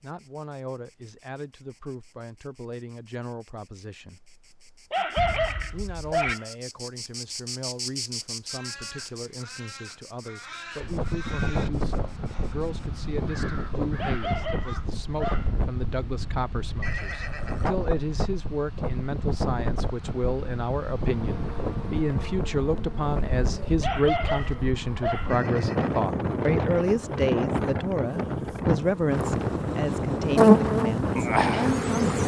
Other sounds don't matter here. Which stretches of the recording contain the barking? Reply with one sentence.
You can hear the barking from 4.9 to 6.5 s, from 13.9 to 15.6 s and from 23.8 to 25.4 s.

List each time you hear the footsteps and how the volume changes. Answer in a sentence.
You can't hear the footsteps here.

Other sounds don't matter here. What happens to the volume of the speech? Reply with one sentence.
The volume of the speech goes up.